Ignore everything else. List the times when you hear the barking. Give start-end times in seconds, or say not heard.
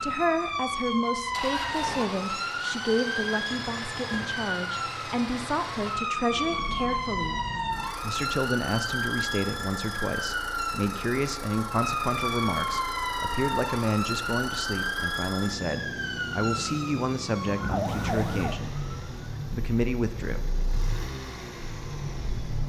not heard.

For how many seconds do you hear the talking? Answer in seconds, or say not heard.
19 s.